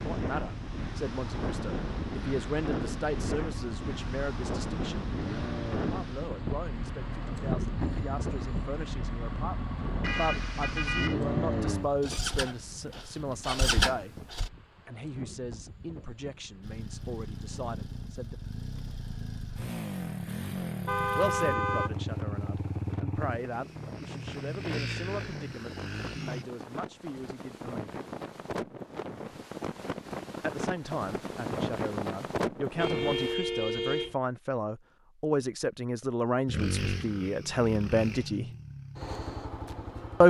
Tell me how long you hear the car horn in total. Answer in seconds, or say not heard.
4 s.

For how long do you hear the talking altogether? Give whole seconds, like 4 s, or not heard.
32 s.